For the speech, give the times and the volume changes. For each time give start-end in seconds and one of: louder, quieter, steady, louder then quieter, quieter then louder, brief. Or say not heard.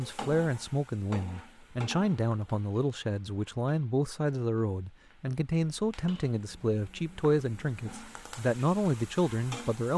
0.0-9.9 steady.